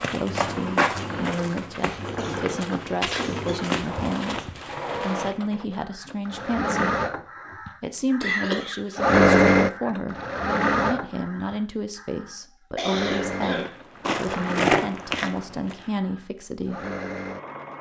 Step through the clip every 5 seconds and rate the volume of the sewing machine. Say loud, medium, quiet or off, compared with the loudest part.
quiet, loud, medium, quiet.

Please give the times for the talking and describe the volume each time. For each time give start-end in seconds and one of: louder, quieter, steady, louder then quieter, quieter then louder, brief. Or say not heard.
0.0-7.0 steady
7.8-16.9 steady.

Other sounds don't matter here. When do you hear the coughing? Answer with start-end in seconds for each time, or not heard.
1.9-3.7, 8.2-8.9, 12.8-13.7.